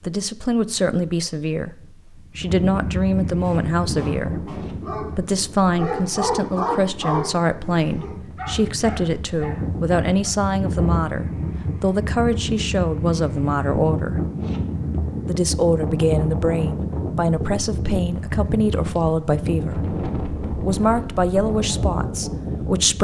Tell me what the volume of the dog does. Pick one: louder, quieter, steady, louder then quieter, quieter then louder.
louder then quieter.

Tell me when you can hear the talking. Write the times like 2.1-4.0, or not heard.
0.0-14.2, 15.2-19.8, 20.4-22.9.